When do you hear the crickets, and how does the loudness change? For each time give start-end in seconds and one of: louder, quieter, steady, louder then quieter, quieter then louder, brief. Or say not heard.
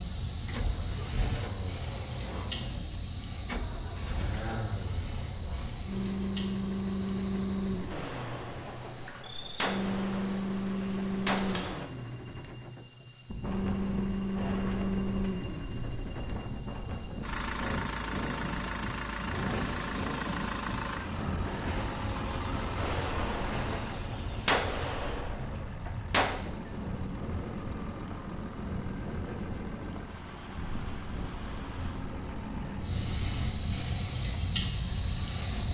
0.0-35.6 louder.